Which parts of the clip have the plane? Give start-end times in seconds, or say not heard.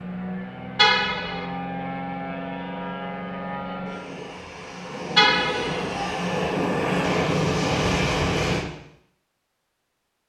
0.0-8.7.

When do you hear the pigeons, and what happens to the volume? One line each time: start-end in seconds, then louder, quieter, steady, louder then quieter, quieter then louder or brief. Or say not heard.
not heard.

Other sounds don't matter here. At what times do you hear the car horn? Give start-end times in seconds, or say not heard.
0.8-1.4, 5.2-5.8.